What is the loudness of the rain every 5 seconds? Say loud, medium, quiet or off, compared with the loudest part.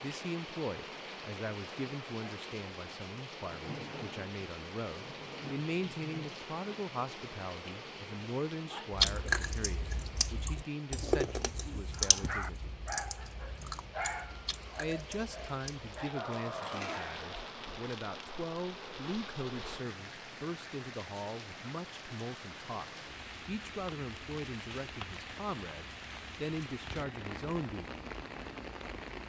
loud, loud, medium, loud, loud, loud.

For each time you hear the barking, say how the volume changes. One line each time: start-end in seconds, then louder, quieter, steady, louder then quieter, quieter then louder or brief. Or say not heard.
11.9-17.4 quieter then louder.